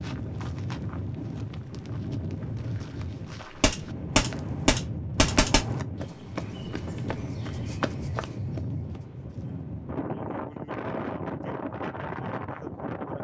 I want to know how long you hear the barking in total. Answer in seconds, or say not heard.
not heard.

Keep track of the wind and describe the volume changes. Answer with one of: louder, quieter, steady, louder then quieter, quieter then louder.
steady.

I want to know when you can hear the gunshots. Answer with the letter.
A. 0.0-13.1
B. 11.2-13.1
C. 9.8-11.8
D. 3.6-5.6
D.